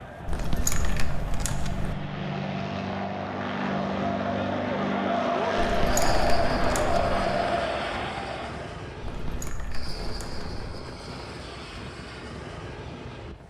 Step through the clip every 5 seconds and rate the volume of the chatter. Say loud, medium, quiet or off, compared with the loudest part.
medium, loud, off.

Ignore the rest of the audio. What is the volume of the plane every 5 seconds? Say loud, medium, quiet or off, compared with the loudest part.
loud, loud, medium.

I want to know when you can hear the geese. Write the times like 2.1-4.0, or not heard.
0.2-1.9, 5.5-7.2, 9.0-10.5.